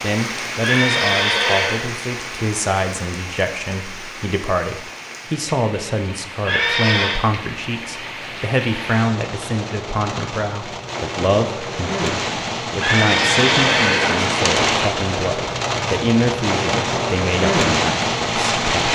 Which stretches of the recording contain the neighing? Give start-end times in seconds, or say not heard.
0.6-1.9, 6.5-7.2, 12.8-14.4.